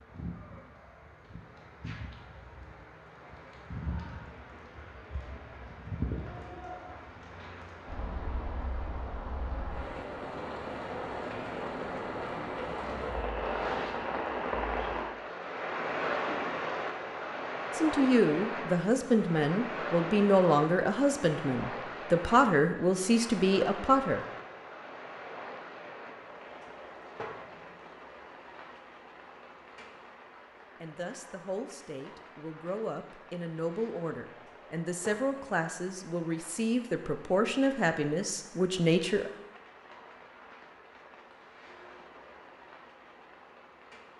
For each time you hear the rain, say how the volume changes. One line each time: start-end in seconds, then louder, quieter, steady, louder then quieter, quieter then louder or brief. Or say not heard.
0.0-44.1 louder then quieter.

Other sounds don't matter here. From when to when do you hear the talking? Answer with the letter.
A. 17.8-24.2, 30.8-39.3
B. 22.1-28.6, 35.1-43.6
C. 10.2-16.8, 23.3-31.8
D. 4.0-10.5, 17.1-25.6
A.